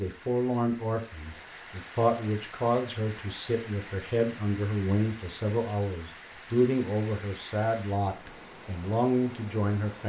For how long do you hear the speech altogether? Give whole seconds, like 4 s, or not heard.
10 s.